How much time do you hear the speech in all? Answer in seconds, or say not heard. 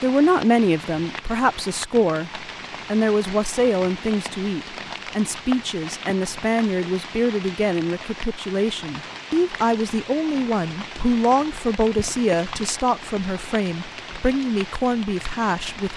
16 s.